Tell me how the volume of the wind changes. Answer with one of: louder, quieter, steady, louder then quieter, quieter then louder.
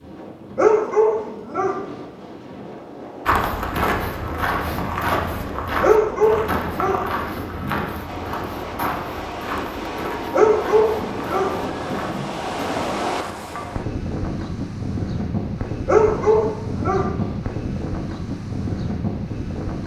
louder.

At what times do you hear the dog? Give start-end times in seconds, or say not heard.
0.6-1.9, 5.8-7.8, 10.3-12.3, 15.8-17.9.